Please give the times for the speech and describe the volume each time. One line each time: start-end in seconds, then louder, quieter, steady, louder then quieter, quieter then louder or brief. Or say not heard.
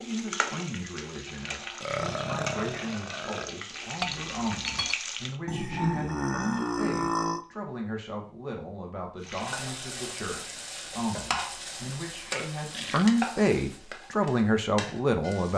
0.0-15.5 louder.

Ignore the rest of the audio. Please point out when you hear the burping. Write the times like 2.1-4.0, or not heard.
1.8-3.5, 5.5-7.5, 12.1-13.1.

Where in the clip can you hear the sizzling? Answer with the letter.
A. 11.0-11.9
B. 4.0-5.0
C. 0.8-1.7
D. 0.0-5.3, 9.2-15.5
D.